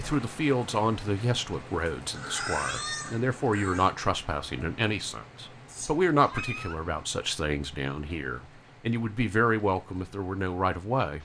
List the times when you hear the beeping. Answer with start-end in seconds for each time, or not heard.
not heard.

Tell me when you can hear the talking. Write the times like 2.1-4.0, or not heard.
0.0-11.1.